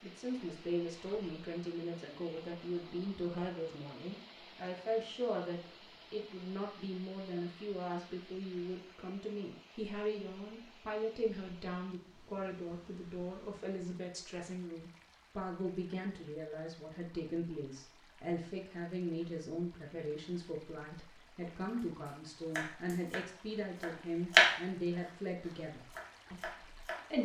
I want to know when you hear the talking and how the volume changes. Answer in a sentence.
The talking can be heard from 0.0 to 27.2 s, at a steady volume.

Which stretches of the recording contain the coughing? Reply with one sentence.
You can't hear the coughing here.